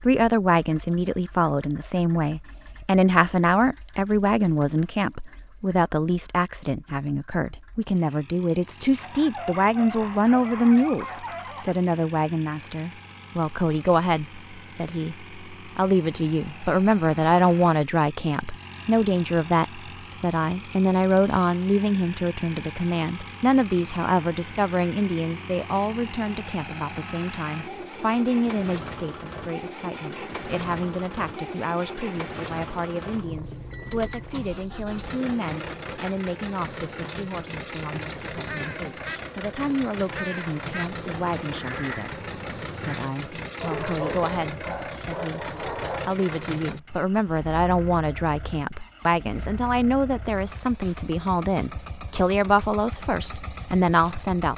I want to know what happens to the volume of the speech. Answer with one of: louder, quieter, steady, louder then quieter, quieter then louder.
quieter then louder.